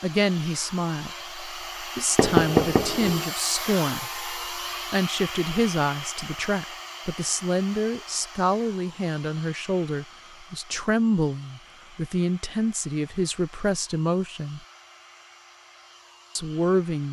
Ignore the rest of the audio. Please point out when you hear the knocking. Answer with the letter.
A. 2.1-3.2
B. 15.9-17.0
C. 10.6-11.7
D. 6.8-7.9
A.